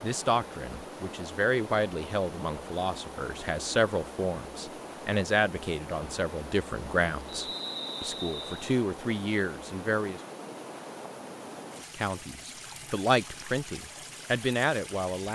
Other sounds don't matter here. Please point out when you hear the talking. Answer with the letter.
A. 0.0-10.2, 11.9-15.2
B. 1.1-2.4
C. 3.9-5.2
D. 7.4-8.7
A.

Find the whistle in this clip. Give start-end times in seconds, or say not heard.
7.4-8.7.